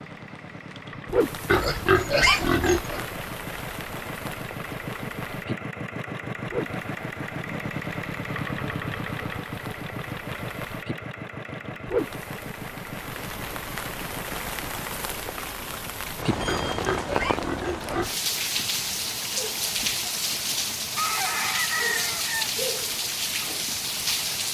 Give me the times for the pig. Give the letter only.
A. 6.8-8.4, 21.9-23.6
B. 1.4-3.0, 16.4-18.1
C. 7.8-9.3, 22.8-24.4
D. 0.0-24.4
B.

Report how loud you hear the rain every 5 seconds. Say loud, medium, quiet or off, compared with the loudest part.
medium, medium, medium, loud, loud.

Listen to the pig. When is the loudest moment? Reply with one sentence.
The volume of the pig peaks at 2 seconds.